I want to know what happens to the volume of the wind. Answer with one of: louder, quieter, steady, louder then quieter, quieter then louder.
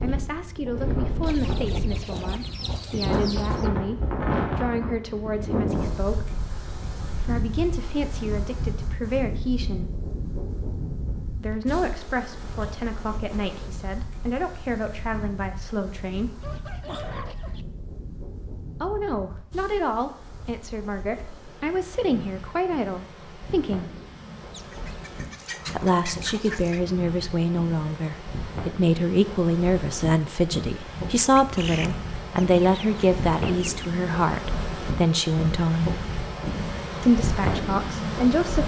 quieter then louder.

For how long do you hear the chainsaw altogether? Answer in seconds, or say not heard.
not heard.